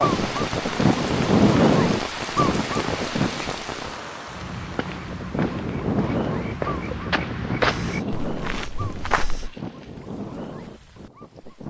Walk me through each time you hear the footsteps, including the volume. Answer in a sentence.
You can hear the footsteps from 4.2 to 9.6 s, getting louder then quieter.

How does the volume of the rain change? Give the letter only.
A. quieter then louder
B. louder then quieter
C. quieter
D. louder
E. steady
C.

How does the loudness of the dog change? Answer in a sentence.
The volume of the dog goes down.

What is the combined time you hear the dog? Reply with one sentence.
The dog can be heard for 10 seconds in total.